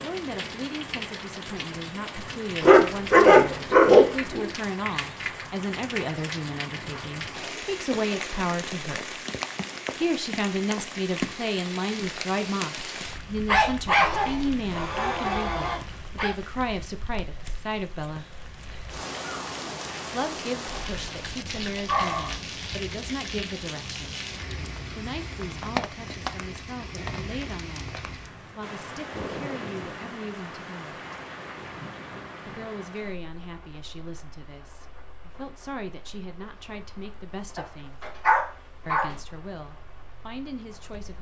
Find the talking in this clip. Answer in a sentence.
You can hear the talking from 0.0 to 9.2 s, from 9.9 to 18.3 s, from 20.1 to 24.2 s, from 24.9 to 31.0 s, from 32.5 to 38.0 s and from 38.9 to 41.1 s.